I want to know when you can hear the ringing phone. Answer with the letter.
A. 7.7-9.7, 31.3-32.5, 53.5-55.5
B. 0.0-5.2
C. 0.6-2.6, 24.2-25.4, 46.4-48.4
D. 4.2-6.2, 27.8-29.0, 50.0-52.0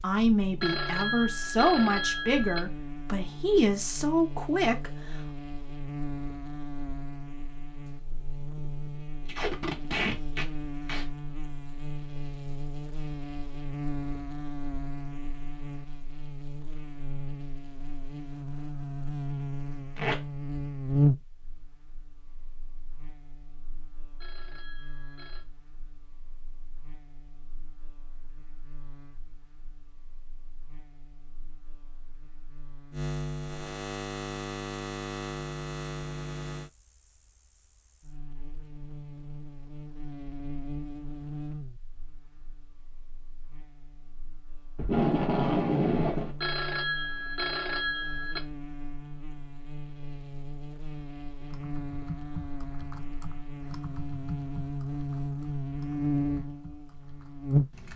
C.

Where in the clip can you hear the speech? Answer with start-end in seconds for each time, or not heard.
0.0-5.2.